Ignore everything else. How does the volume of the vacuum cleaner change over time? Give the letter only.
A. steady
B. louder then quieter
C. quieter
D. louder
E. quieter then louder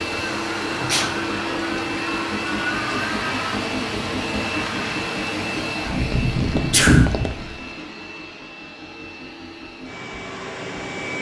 C.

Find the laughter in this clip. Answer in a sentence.
You can't hear the laughter here.